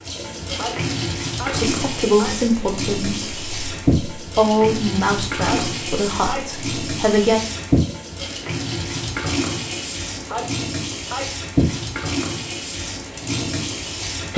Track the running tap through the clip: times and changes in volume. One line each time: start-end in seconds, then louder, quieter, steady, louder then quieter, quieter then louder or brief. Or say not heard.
0.0-14.3 steady.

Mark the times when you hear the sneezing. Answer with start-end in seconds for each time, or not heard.
0.6-2.4, 5.5-6.7, 10.2-11.5.